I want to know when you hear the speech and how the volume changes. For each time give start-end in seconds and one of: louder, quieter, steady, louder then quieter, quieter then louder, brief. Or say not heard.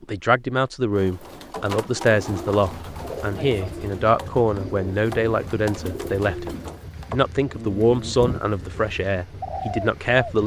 0.0-10.4 steady.